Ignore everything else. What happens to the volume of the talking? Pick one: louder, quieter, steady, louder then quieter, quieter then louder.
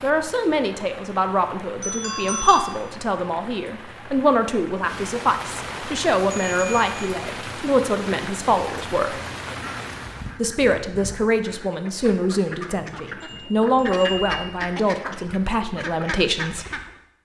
steady.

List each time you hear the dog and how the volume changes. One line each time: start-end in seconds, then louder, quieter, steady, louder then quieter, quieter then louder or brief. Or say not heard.
not heard.